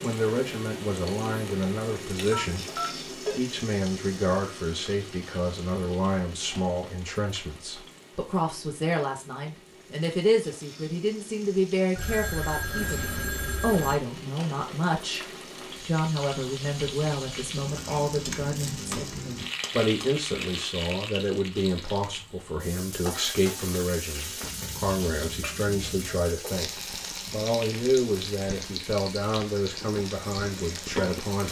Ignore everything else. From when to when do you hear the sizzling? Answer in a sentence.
You can hear the sizzling from 0.0 to 31.4 s.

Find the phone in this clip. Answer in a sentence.
You can hear the phone from 2.3 to 3.4 s, from 11.9 to 13.9 s and from 24.4 to 26.3 s.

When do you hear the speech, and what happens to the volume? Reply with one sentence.
The speech can be heard from 0.0 to 31.4 s, at a steady volume.